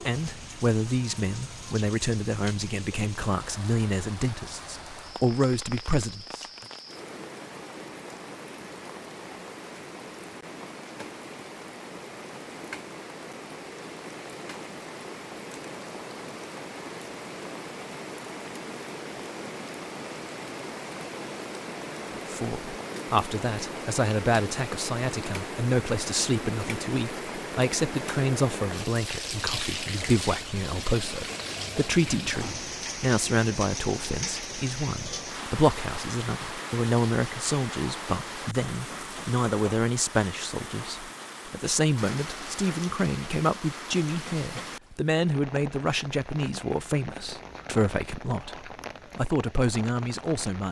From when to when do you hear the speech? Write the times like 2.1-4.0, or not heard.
0.1-6.5, 22.1-50.6.